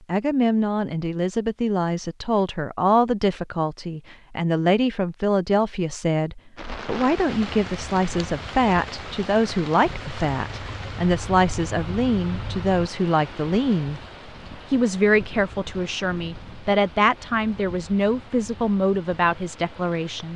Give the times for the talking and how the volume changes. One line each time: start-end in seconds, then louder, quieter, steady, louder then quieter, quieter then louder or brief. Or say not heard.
0.1-14.0 steady
14.7-20.3 steady.